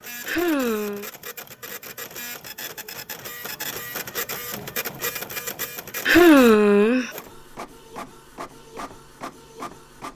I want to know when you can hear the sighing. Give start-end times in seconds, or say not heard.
0.2-1.1, 6.0-7.1.